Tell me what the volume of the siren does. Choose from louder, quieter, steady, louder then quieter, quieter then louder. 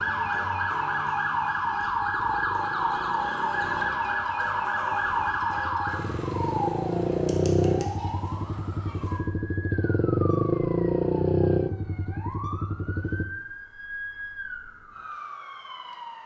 quieter.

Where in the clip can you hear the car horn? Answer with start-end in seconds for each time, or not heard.
not heard.